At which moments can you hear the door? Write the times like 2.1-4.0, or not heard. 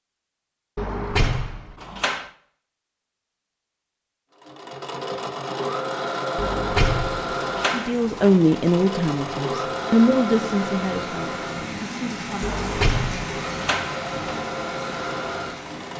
0.8-2.3, 6.3-8.4, 12.4-14.4.